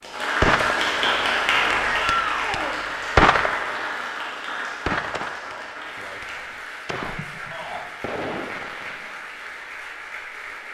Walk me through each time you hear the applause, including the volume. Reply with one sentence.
You can hear the applause from 0.0 to 10.6 s, getting quieter.